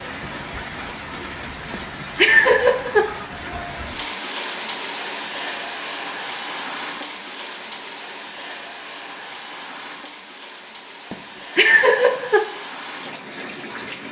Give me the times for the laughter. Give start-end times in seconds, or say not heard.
1.7-3.1, 11.1-12.4.